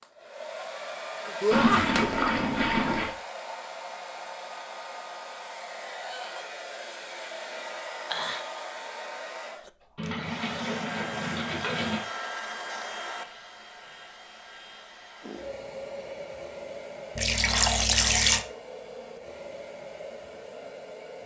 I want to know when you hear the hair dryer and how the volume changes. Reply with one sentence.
You can hear the hair dryer from 0.0 to 21.2 s, getting quieter.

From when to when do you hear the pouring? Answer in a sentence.
The pouring can be heard from 1.5 to 3.1 s, from 9.9 to 12.0 s and from 17.1 to 18.4 s.